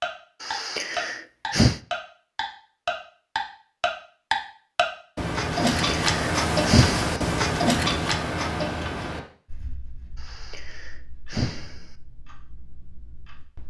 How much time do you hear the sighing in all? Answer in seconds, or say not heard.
5 s.